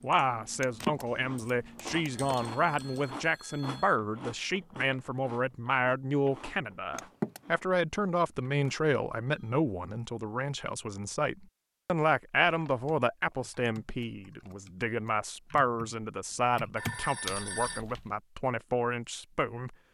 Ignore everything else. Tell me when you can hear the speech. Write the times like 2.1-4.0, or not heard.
0.0-19.8.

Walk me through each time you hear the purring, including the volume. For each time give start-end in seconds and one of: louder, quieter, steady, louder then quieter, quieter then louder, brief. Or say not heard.
not heard.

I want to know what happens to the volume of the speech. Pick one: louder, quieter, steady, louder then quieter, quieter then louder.
steady.